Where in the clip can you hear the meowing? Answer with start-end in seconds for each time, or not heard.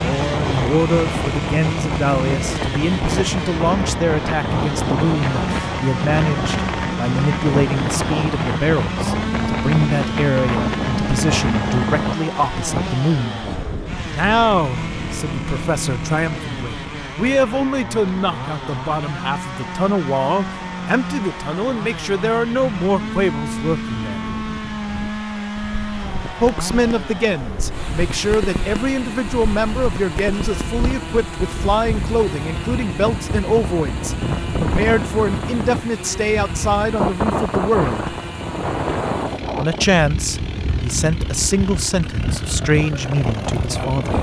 not heard.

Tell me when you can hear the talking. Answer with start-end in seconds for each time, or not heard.
0.0-13.4, 14.1-24.3, 26.4-38.1, 39.5-44.1.